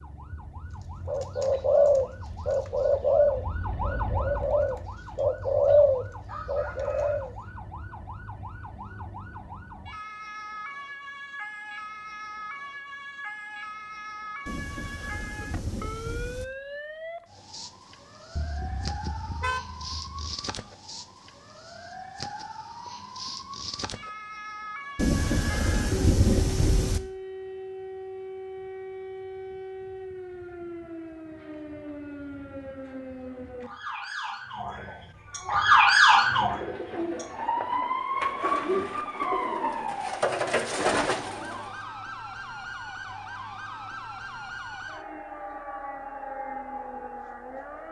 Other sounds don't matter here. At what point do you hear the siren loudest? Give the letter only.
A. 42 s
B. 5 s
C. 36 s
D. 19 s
C.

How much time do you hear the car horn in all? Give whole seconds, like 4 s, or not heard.
2 s.